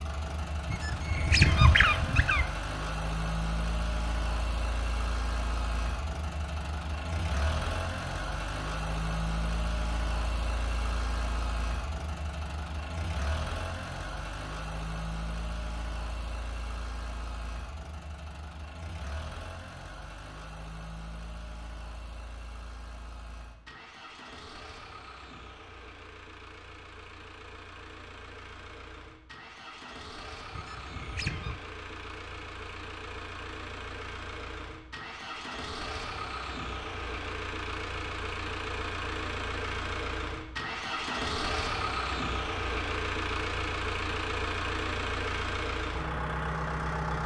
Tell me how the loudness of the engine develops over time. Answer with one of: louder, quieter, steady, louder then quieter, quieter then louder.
quieter then louder.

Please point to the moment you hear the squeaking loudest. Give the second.
2 s.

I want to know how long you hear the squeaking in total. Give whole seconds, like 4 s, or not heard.
3 s.